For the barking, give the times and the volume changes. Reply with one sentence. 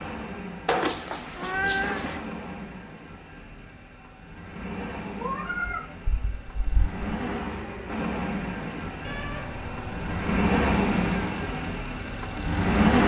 You can't hear the barking here.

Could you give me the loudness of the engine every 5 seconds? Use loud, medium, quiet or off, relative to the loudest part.
quiet, medium, loud.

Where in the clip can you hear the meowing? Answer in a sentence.
You can hear the meowing from 0.7 to 2.2 s, from 5.2 to 7.1 s and from 9.0 to 11.2 s.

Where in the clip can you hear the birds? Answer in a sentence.
You can't hear the birds here.